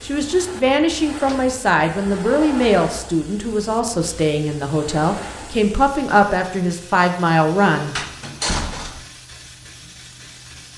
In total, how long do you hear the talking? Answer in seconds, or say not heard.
8 s.